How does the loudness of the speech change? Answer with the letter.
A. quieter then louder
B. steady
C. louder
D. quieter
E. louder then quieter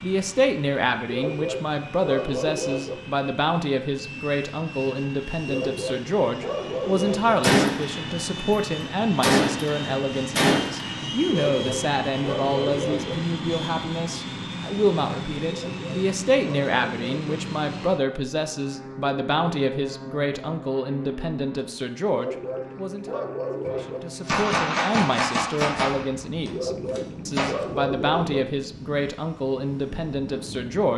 B.